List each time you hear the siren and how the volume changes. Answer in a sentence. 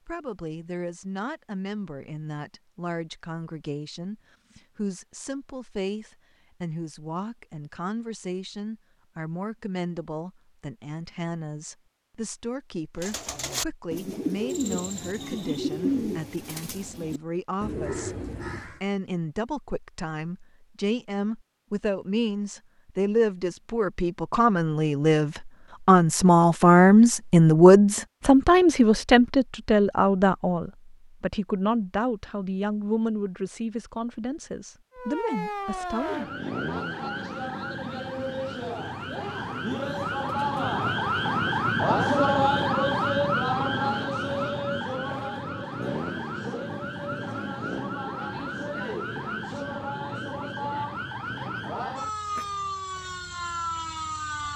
The siren can be heard from 34.9 to 54.5 s, getting louder then quieter.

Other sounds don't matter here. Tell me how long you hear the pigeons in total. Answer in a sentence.
You can hear the pigeons for 6 seconds altogether.